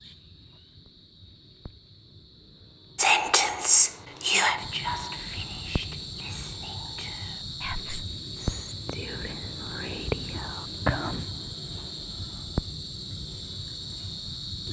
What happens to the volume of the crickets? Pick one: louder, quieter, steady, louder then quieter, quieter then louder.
louder.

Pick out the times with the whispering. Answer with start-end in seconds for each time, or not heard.
3.0-11.2.